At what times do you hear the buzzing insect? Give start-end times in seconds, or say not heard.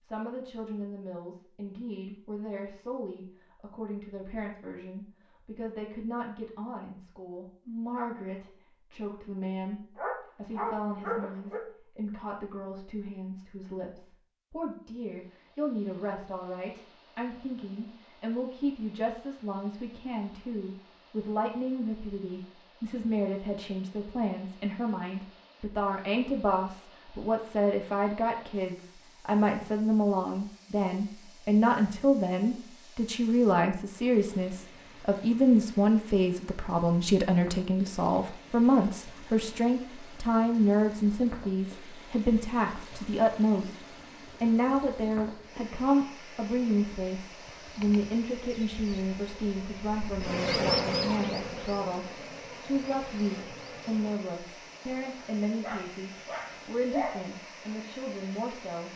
47.4-54.2.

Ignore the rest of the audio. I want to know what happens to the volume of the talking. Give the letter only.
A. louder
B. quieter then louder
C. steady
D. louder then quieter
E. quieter
D.